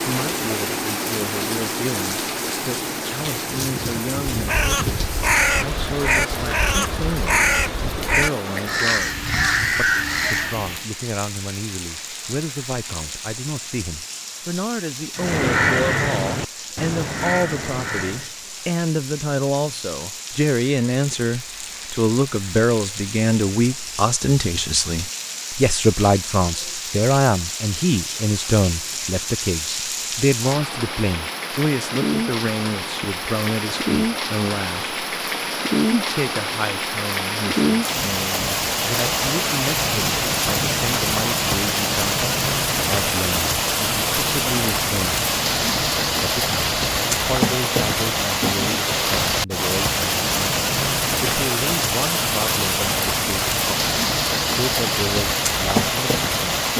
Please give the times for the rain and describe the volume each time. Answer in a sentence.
You can hear the rain from 0.0 to 56.7 s, getting quieter then louder.